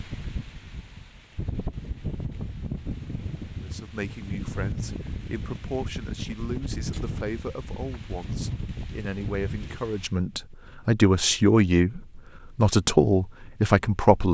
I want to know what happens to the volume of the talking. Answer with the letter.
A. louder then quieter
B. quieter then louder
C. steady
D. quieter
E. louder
E.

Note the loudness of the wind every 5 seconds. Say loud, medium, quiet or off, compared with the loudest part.
loud, loud, quiet.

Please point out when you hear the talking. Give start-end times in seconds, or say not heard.
3.6-14.2.